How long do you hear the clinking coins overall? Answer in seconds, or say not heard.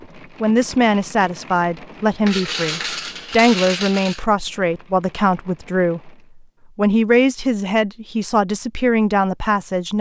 2 s.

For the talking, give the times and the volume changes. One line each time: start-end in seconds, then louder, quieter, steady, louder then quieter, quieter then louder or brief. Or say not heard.
0.4-9.9 steady.